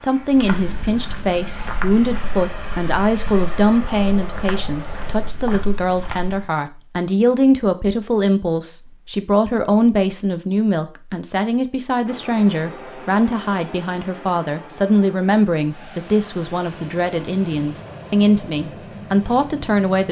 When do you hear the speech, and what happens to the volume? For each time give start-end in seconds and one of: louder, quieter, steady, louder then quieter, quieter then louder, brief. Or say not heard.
0.0-20.0 steady.